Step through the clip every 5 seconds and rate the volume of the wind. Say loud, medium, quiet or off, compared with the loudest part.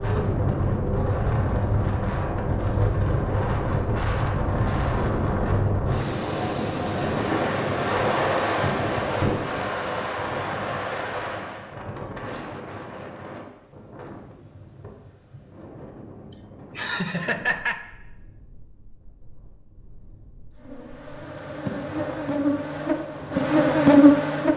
loud, loud, medium, quiet, quiet.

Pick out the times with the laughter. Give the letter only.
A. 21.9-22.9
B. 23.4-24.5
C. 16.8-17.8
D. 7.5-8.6
C.